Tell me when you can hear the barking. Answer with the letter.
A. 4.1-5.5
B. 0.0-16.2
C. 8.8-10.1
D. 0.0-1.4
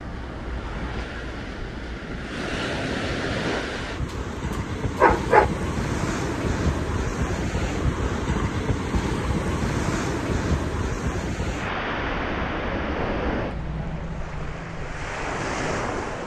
A.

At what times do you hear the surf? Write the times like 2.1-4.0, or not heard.
0.0-16.2.